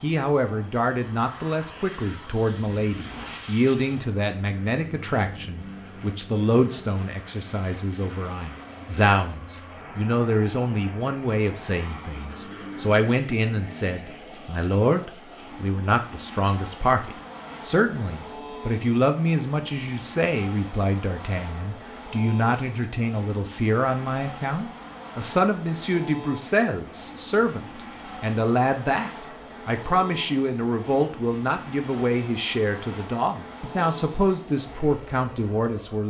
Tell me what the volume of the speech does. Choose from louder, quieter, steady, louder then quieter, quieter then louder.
steady.